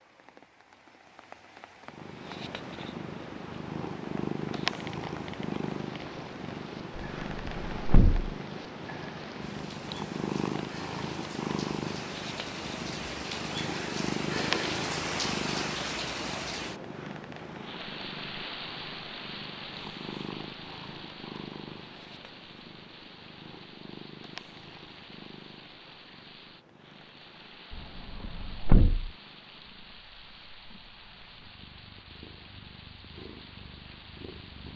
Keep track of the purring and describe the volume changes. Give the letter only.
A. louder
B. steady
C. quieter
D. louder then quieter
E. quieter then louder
C.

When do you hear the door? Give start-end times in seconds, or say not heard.
7.0-8.3, 27.7-29.1.